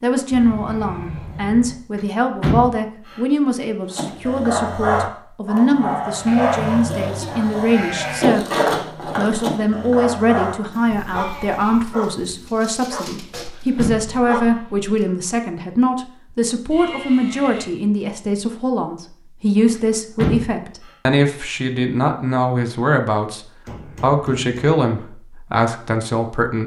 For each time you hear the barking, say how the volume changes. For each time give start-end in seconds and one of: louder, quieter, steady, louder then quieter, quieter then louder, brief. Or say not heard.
3.9-15.1 quieter.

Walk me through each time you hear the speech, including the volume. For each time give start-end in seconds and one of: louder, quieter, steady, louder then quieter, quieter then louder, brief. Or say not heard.
0.0-26.6 steady.